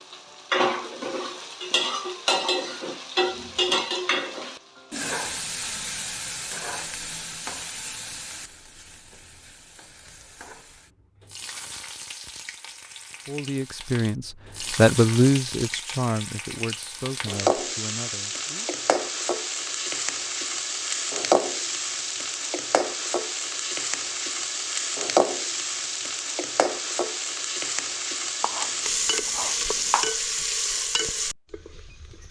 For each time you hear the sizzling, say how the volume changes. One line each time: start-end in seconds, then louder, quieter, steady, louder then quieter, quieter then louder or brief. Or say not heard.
0.0-32.2 quieter then louder.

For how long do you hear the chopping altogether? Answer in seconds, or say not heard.
2 s.